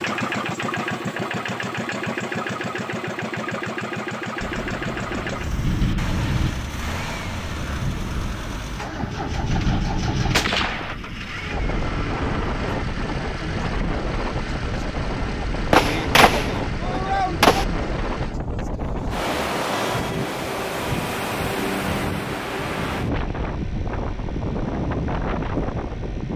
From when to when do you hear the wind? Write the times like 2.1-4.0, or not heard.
4.4-26.3.